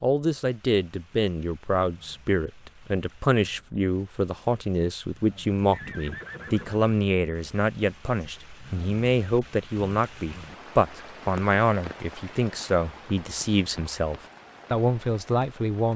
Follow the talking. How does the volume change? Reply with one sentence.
The loudness of the talking stays about the same.